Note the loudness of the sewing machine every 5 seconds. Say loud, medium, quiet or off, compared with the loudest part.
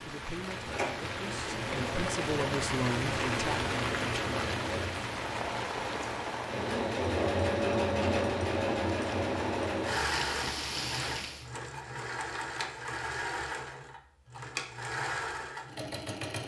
medium, loud, medium, medium.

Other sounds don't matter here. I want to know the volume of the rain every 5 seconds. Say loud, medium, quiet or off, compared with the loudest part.
loud, loud, loud, off.